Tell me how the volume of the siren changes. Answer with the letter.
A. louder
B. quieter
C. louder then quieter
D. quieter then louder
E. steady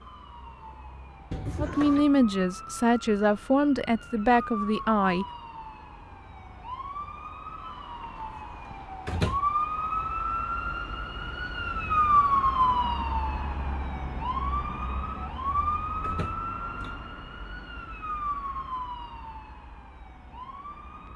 C.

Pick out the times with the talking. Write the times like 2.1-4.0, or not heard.
1.6-5.2.